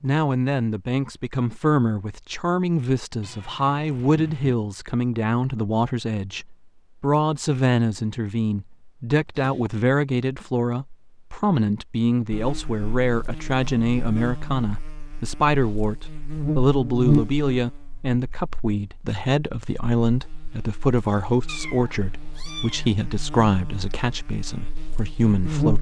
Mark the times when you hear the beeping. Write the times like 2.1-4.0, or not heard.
not heard.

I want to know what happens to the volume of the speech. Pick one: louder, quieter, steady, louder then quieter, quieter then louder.
steady.